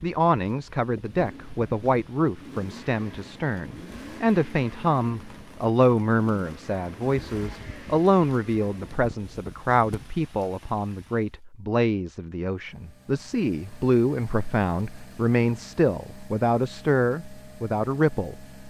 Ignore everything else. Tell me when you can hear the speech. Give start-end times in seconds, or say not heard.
0.0-18.4.